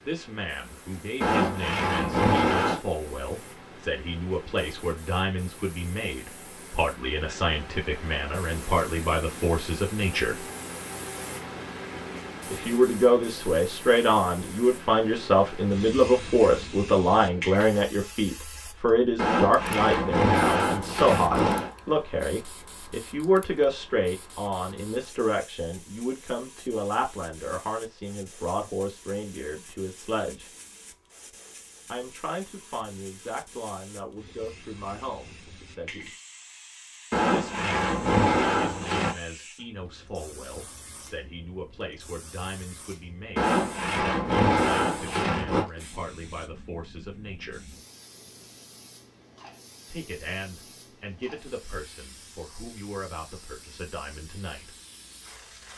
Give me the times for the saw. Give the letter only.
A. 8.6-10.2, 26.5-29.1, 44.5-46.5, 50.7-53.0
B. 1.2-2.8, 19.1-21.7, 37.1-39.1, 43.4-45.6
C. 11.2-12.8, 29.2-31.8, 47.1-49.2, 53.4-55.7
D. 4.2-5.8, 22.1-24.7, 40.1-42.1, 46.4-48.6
B.